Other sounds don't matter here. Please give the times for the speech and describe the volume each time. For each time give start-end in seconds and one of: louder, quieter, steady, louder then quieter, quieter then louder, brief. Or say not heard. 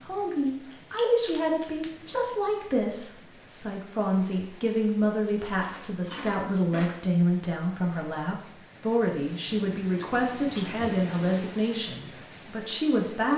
0.0-13.3 steady.